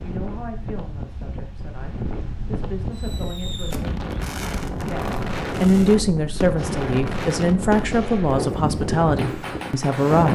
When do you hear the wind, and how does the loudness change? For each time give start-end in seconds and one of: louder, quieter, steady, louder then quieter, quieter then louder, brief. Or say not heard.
0.0-10.3 louder.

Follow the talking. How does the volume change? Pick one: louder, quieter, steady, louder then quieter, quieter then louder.
louder.